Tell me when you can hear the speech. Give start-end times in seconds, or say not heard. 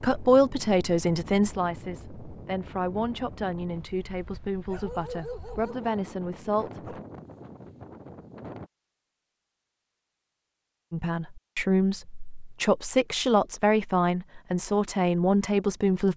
0.0-7.0, 10.9-16.1.